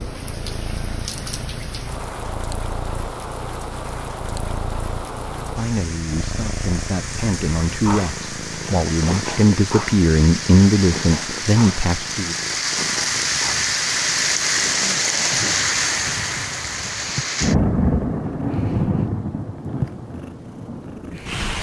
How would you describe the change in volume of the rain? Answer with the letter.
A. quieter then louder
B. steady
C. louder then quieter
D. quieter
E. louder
E.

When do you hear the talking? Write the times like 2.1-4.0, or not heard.
5.5-12.3.